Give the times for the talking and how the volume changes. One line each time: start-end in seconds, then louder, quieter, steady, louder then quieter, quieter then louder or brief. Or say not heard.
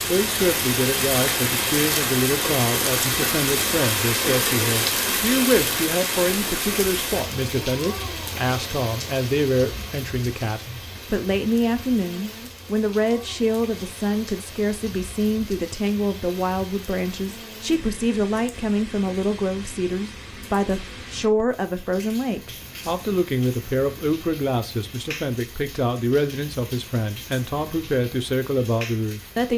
0.0-29.5 steady.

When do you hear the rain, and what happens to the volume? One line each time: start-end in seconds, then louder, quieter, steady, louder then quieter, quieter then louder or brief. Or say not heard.
0.0-29.5 quieter.